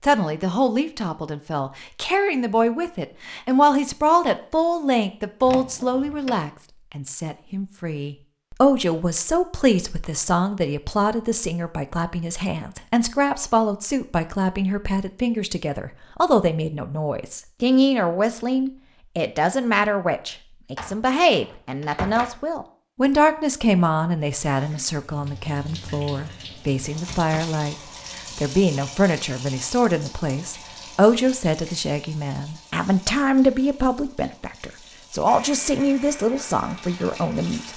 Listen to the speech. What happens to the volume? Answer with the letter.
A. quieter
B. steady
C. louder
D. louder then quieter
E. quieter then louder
B.